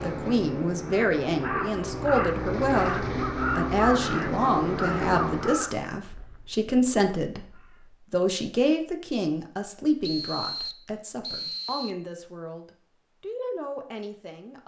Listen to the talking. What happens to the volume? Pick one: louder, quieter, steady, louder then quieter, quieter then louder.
quieter.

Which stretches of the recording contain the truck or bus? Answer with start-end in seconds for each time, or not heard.
0.0-5.8.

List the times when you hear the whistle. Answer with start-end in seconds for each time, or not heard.
10.0-11.9.